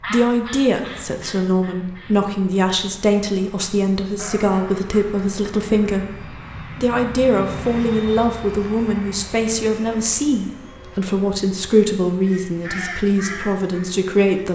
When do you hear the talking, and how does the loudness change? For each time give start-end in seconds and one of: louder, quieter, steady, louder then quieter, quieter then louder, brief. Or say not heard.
0.1-14.5 steady.